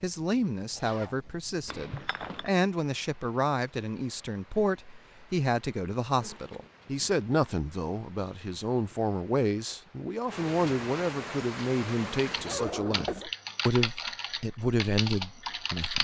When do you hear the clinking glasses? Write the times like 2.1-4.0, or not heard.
1.6-2.5.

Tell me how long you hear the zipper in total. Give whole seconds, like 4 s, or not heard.
3 s.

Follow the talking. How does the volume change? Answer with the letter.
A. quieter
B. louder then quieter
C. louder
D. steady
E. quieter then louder
D.